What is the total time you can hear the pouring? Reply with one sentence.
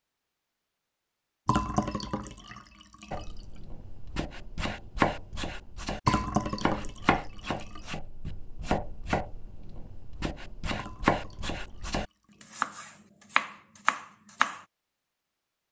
You can hear the pouring for 5 seconds altogether.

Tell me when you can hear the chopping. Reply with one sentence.
The chopping can be heard from 3.1 to 14.6 s.